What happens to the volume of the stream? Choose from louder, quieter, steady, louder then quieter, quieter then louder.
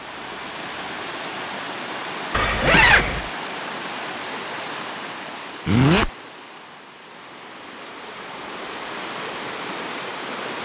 quieter then louder.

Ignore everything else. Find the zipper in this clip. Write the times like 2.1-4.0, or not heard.
2.3-3.3, 5.7-6.1.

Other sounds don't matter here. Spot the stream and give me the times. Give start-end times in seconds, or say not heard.
0.0-10.6.